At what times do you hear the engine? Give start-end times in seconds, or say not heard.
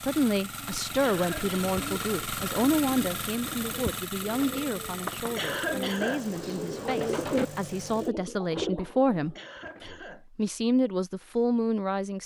0.0-8.1.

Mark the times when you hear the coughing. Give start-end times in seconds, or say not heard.
1.0-1.6, 5.3-6.6, 9.3-10.6.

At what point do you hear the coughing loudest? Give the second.
6 s.